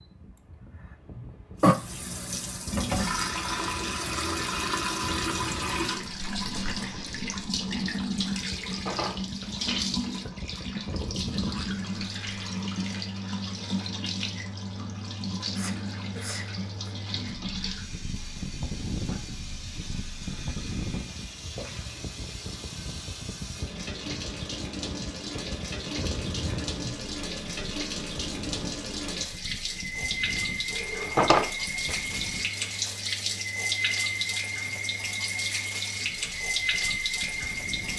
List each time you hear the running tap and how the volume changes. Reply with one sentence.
The running tap can be heard from 1.6 to 37.9 s, getting quieter then louder.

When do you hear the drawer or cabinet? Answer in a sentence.
The drawer or cabinet can be heard from 8.4 to 10.1 s and from 30.8 to 31.9 s.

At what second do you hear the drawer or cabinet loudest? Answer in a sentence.
The loudest moment of the drawer or cabinet is at 31 seconds.